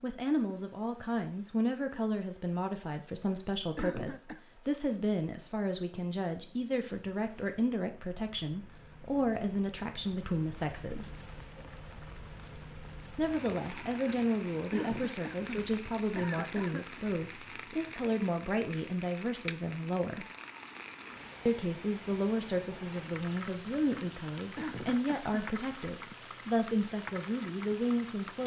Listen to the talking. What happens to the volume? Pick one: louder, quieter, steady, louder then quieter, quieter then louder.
steady.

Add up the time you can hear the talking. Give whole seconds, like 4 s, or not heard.
25 s.